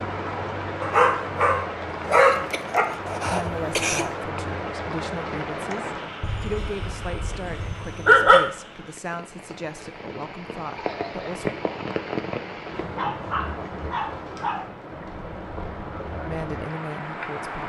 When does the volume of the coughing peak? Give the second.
4 s.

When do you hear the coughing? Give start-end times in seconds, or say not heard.
2.1-4.1, 10.8-11.3.